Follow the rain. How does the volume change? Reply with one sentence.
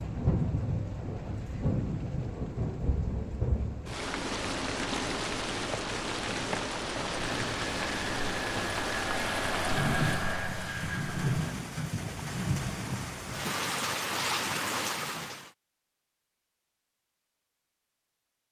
The loudness of the rain stays about the same.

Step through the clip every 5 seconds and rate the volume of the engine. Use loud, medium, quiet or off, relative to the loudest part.
off, loud, loud, off.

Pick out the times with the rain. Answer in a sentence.
The rain can be heard from 0.0 to 15.5 s.